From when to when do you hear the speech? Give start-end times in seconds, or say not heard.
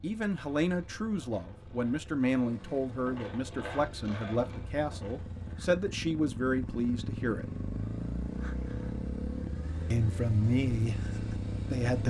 0.0-7.5, 9.9-12.0.